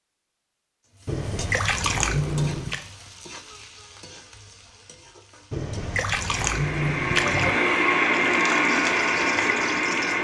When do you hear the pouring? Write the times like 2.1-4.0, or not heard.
1.1-2.8, 5.5-7.5.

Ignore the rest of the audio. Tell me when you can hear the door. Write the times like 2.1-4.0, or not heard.
not heard.